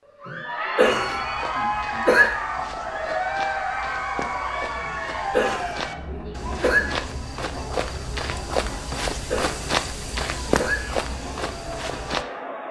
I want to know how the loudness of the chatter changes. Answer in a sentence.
The loudness of the chatter goes down.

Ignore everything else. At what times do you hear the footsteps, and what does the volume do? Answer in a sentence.
The footsteps can be heard from 0.9 to 12.2 s, getting louder.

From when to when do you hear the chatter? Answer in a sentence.
You can hear the chatter from 0.1 to 12.6 s.